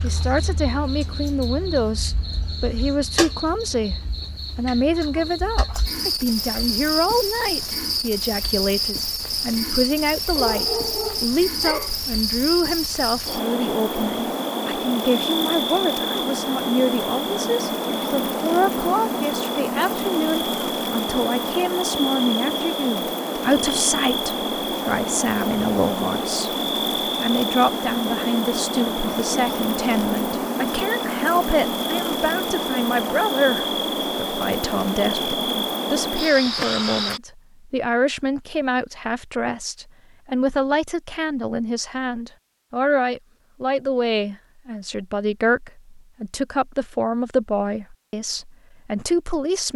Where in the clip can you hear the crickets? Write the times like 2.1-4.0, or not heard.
0.0-37.2.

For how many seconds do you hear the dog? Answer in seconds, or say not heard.
2 s.